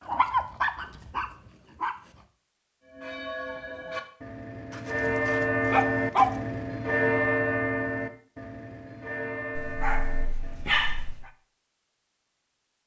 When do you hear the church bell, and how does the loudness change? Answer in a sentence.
The church bell can be heard from 2.9 to 10.8 s, getting louder then quieter.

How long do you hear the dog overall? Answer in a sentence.
You can hear the dog for 5 seconds altogether.